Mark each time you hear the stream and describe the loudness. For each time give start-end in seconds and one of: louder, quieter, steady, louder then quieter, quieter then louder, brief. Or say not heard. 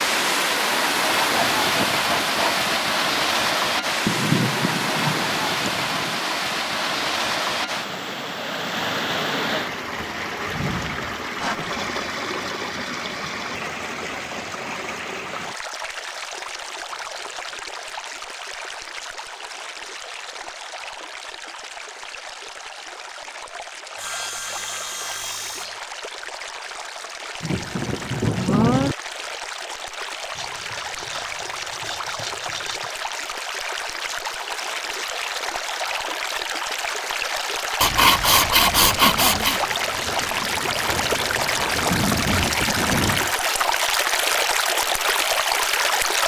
0.0-46.2 quieter then louder.